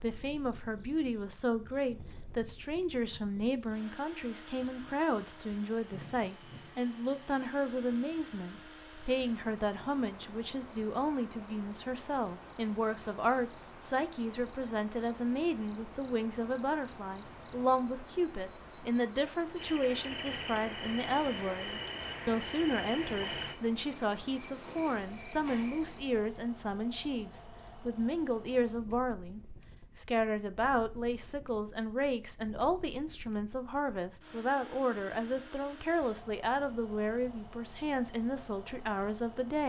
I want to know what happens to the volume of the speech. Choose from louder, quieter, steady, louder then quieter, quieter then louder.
steady.